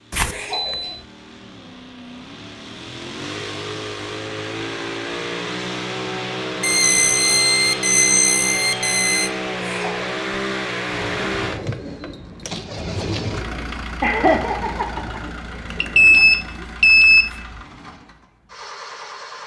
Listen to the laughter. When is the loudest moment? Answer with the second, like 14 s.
14 s.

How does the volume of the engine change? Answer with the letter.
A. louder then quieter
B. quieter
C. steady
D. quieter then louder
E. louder
A.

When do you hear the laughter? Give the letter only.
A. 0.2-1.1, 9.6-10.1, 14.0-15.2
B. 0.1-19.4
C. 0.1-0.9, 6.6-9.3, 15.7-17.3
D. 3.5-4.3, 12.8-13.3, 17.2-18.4
A.